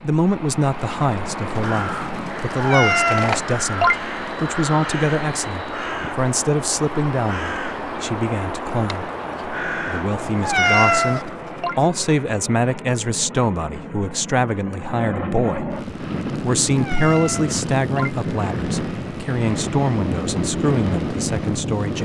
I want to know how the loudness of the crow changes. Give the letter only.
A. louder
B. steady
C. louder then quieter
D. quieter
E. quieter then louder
B.